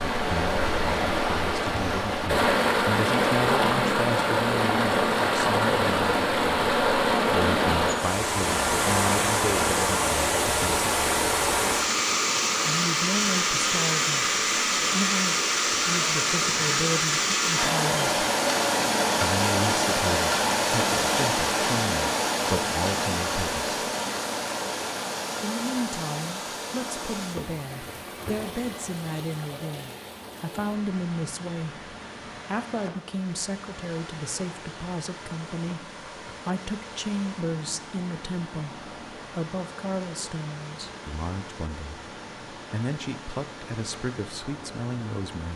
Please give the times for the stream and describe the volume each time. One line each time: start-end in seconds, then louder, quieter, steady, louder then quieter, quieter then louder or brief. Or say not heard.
0.0-45.5 quieter.